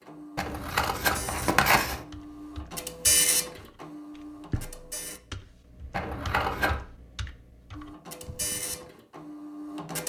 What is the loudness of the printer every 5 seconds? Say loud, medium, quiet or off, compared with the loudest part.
loud, medium.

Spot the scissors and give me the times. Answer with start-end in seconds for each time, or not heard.
0.3-2.0, 5.9-6.8.